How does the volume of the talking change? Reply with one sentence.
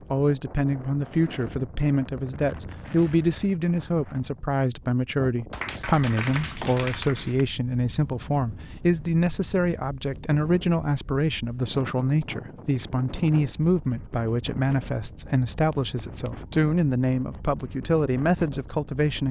The volume of the talking stays about the same.